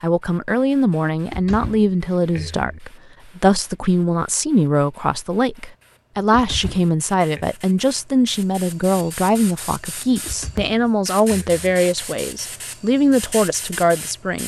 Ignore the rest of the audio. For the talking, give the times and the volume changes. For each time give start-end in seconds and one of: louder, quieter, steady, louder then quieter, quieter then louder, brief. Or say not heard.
0.0-14.4 steady.